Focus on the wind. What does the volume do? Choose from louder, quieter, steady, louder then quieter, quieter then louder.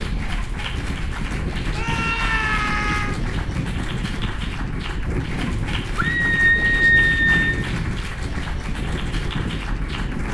steady.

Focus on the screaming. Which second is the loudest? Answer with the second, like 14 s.
7 s.